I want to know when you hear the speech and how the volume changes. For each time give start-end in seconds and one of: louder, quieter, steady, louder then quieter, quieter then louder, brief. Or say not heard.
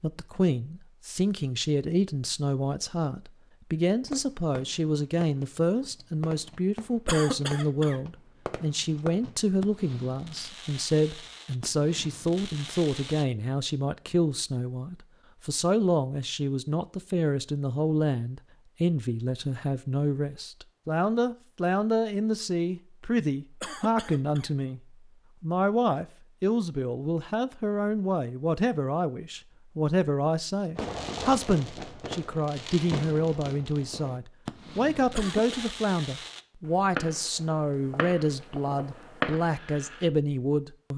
0.0-40.9 steady.